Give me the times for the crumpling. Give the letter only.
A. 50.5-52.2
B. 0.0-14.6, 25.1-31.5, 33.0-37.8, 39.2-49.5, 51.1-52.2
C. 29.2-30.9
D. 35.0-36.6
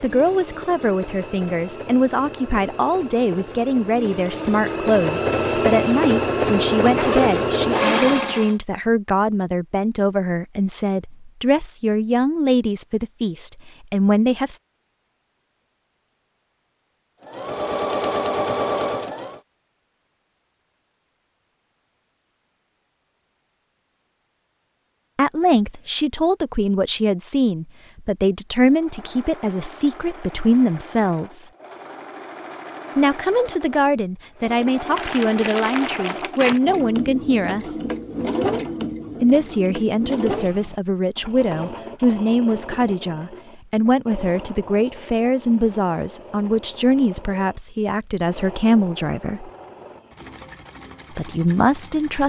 D.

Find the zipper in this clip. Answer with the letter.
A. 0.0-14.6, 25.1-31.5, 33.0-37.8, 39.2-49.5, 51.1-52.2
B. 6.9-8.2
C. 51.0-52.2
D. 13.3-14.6
B.